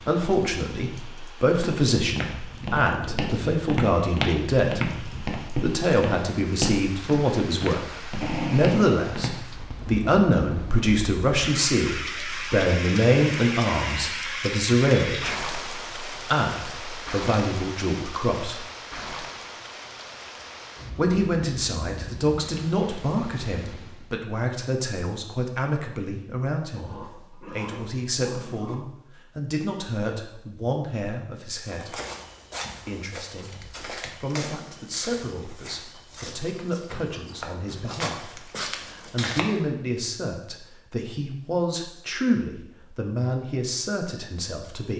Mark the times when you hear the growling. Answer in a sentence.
The growling can be heard from 8.2 to 8.9 s and from 26.8 to 28.8 s.